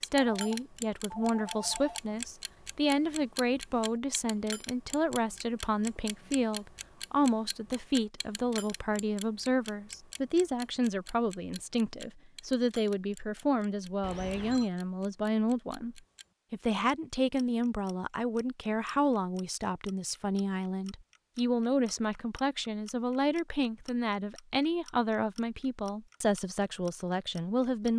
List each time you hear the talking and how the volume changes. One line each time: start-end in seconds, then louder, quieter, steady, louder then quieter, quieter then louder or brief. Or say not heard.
0.0-27.9 steady.